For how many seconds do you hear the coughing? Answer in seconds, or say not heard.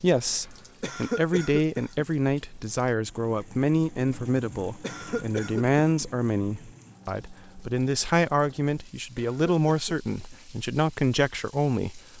4 s.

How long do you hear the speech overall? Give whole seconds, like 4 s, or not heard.
12 s.